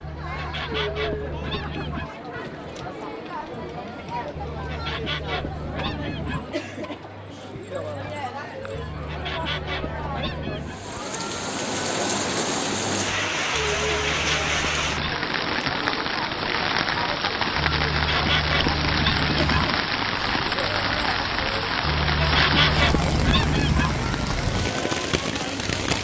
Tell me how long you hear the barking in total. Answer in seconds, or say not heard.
not heard.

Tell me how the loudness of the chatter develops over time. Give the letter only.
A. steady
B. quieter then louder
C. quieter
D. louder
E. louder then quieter
A.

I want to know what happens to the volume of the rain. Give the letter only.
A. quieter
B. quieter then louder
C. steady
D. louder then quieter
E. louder
C.